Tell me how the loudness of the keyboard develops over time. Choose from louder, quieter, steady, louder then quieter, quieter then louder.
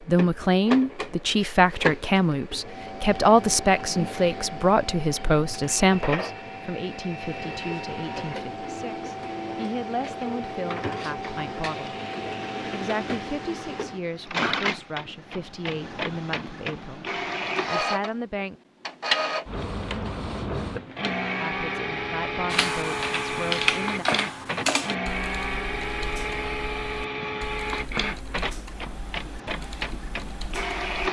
quieter.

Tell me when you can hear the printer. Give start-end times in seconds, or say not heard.
0.0-31.0.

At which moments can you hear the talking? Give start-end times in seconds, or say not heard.
0.0-11.9, 12.7-18.6, 21.4-24.1.